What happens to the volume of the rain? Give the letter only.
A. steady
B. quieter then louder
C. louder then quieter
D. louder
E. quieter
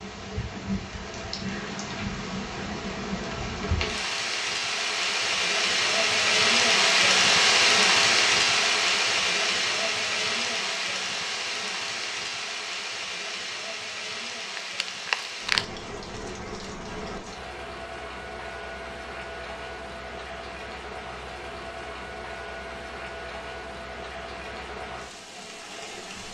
C.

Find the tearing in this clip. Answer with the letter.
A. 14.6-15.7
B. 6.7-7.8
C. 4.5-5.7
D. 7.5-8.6
A.